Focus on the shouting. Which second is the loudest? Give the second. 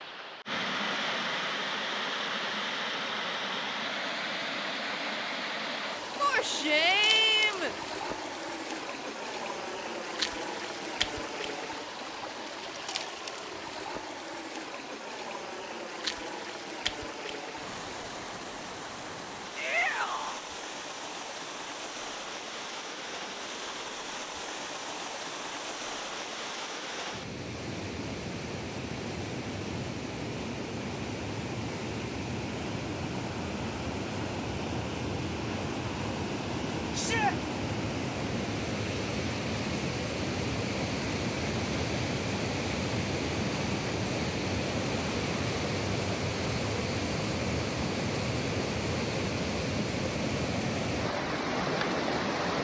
7 s.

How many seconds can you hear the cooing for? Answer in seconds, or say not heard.
not heard.